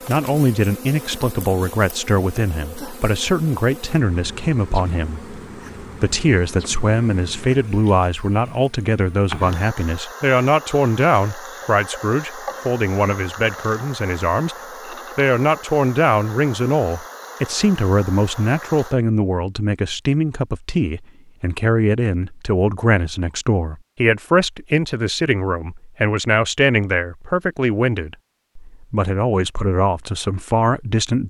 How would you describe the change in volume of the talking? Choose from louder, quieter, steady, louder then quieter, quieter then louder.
steady.